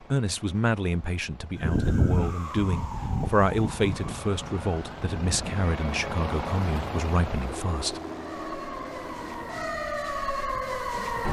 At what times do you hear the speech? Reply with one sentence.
You can hear the speech from 0.1 to 8.0 s.